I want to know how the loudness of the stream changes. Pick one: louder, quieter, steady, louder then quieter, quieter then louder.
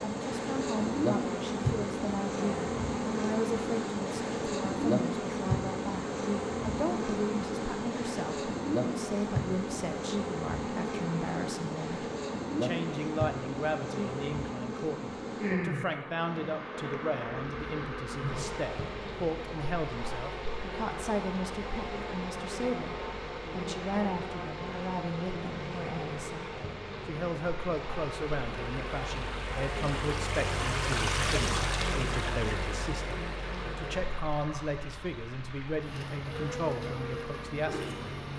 louder then quieter.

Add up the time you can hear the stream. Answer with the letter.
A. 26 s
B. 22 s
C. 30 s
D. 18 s
B.